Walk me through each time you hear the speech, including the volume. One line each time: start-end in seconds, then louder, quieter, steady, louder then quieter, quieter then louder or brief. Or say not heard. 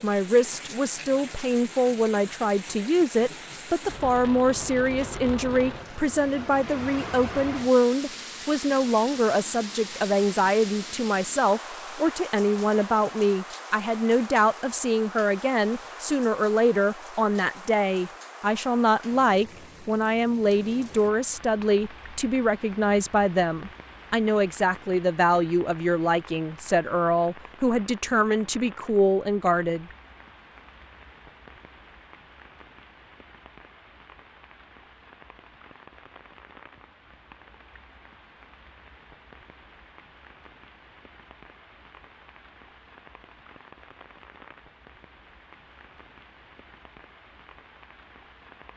0.0-29.9 steady.